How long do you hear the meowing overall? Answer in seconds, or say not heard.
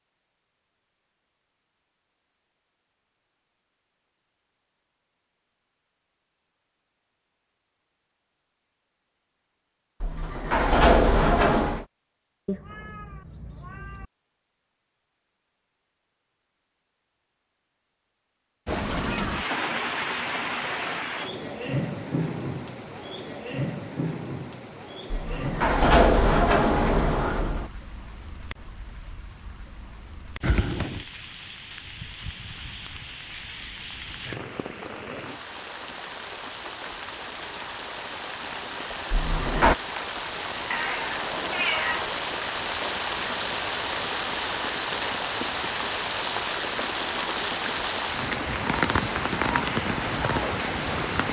4 s.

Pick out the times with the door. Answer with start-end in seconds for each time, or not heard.
10.0-11.8, 25.1-27.7, 39.1-39.8.